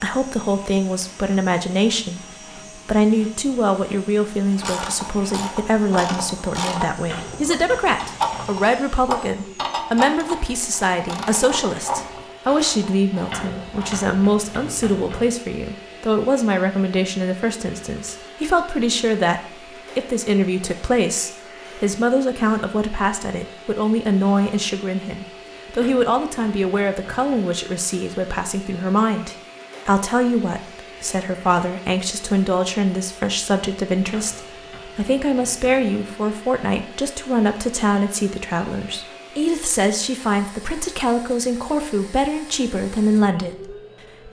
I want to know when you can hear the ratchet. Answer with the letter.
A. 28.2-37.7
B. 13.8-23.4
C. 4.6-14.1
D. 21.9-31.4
C.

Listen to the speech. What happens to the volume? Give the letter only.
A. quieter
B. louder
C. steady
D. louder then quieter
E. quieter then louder
C.